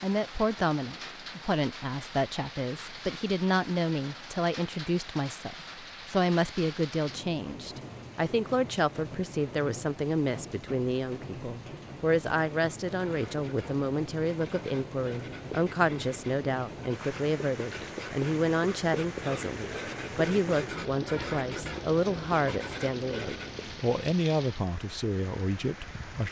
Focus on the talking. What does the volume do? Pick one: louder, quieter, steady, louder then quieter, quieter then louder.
steady.